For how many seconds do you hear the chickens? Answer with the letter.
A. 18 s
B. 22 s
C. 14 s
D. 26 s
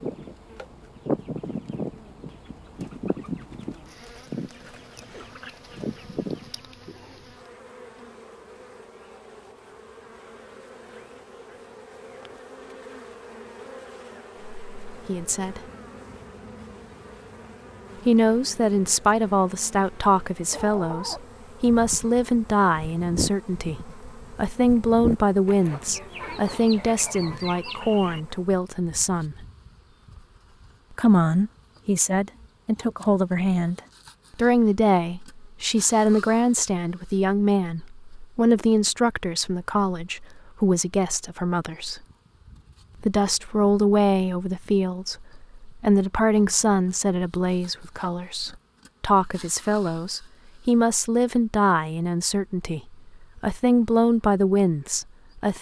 C.